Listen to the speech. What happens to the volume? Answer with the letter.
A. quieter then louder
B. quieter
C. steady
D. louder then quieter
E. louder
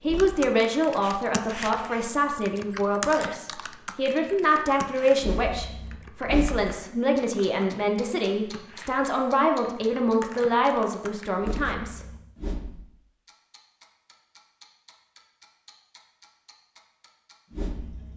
C.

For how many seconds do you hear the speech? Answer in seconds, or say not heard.
12 s.